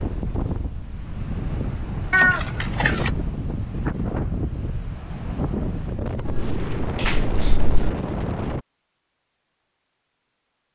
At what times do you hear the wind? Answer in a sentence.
You can hear the wind from 0.0 to 8.7 s.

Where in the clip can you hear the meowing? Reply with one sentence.
You can hear the meowing from 2.1 to 3.1 s and from 6.2 to 7.9 s.